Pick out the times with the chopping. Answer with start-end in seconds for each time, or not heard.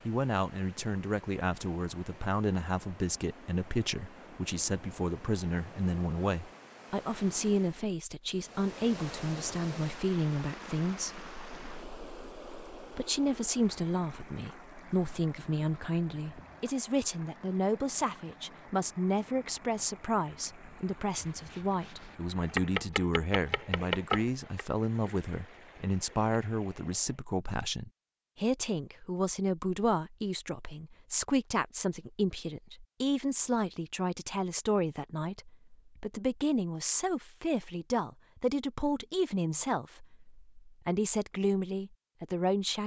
21.2-24.6.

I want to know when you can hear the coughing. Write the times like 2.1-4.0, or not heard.
not heard.